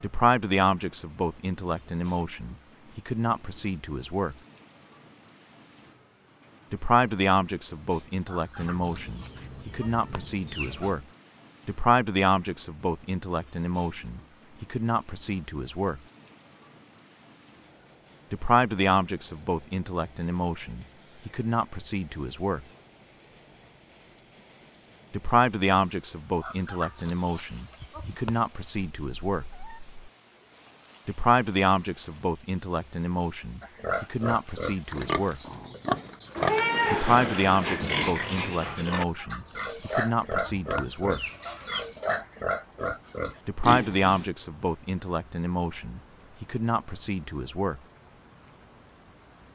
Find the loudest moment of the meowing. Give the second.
37 s.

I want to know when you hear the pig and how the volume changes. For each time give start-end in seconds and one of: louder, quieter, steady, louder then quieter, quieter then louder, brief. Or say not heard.
33.6-44.2 steady.